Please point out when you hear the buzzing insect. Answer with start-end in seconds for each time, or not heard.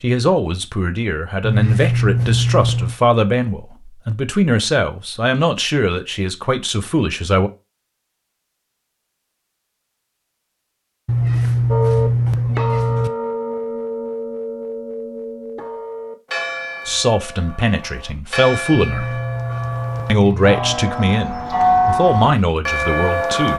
not heard.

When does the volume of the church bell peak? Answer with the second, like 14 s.
22 s.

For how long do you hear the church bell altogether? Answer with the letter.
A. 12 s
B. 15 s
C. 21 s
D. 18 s
A.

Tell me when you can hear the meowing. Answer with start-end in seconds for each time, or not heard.
1.4-3.0, 11.1-13.1, 18.8-20.8.